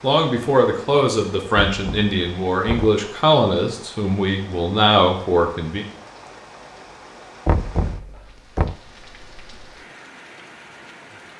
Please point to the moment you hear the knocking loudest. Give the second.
8 s.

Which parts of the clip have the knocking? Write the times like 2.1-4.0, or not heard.
1.6-3.0, 7.5-8.8.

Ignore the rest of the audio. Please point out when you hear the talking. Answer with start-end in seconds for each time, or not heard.
0.0-5.8.